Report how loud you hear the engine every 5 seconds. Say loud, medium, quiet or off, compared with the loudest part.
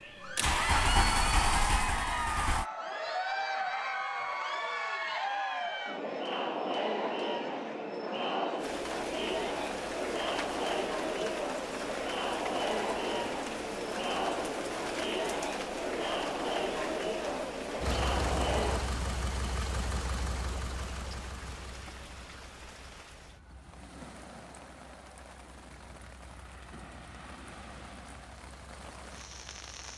loud, off, off, medium, quiet, quiet.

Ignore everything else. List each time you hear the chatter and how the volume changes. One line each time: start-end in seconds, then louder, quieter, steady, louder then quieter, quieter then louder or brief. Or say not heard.
0.1-18.9 steady.